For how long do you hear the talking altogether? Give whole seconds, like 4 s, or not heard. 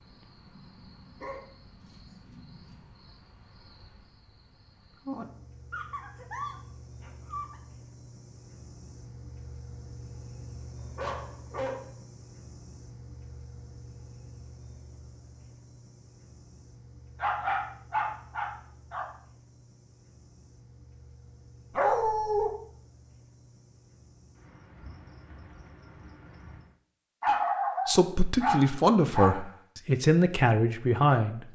4 s.